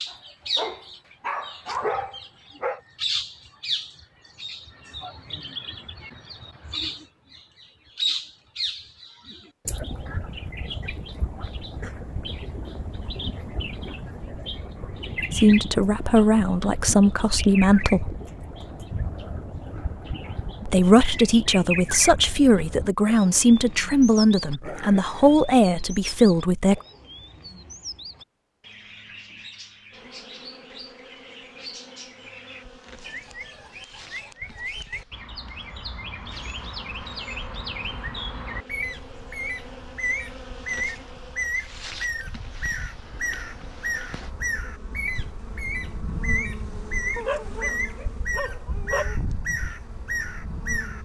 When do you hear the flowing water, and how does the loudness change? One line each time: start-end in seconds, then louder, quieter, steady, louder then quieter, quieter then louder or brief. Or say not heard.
not heard.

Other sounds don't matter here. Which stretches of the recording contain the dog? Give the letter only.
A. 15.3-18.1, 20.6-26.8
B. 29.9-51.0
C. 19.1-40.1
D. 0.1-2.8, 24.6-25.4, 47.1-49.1
D.